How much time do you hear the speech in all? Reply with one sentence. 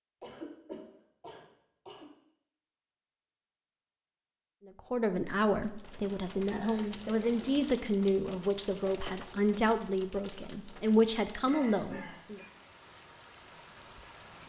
The speech can be heard for 8 seconds in total.